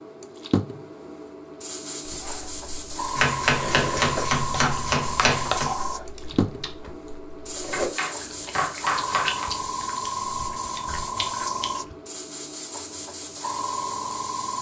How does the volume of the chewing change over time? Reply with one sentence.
The volume of the chewing goes down.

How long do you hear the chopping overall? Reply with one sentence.
The chopping can be heard for 4 seconds in total.